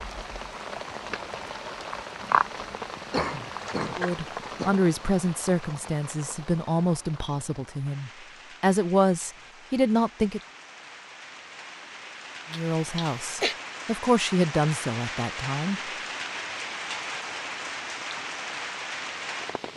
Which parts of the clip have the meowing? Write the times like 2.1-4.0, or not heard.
not heard.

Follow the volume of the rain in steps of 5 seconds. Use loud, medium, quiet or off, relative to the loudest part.
loud, quiet, medium, loud.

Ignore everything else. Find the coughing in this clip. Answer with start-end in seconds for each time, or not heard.
2.2-4.8, 12.5-13.6.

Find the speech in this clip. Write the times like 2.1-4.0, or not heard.
4.0-10.4, 12.5-15.8.